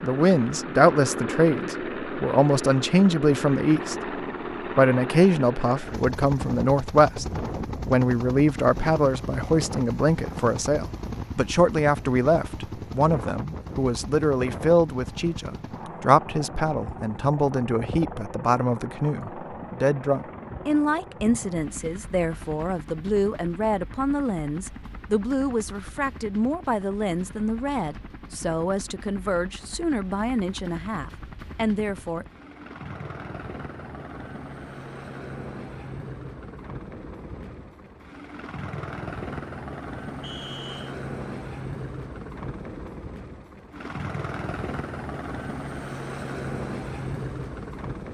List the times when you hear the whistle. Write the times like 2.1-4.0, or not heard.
40.2-41.0.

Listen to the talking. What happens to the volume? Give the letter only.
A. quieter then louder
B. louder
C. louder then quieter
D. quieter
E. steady
D.